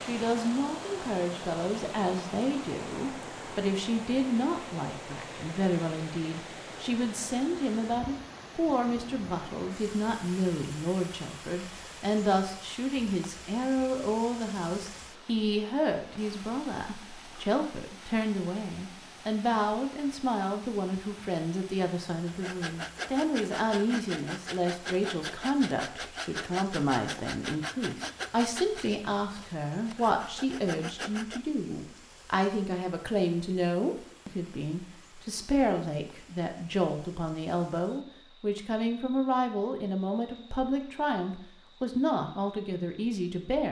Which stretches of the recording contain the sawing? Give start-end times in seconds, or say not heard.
22.2-31.4.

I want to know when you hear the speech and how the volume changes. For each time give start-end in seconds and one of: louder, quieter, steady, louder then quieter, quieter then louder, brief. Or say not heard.
0.0-43.6 steady.